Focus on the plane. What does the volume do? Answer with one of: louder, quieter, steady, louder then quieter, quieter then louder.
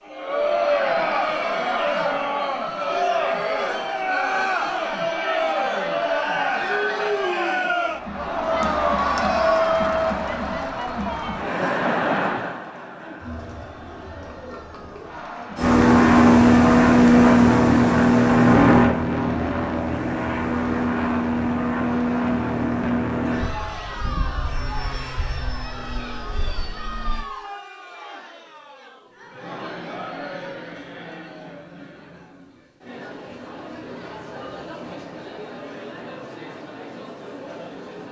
quieter.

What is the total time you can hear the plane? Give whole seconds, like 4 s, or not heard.
12 s.